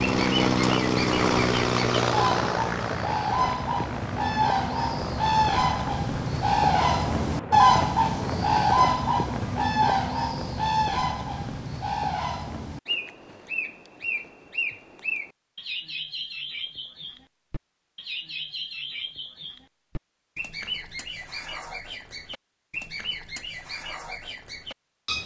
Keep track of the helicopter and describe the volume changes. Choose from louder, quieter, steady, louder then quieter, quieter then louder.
quieter.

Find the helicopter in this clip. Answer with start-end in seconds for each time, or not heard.
0.0-8.7.